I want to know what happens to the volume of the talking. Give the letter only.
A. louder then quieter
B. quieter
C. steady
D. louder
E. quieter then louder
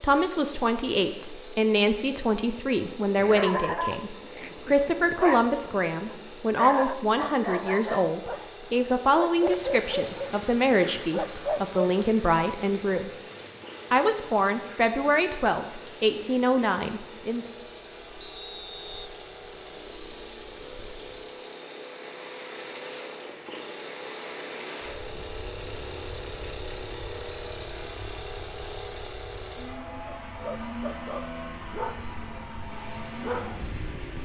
C.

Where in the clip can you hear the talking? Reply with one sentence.
You can hear the talking from 0.0 to 13.1 s and from 13.9 to 17.5 s.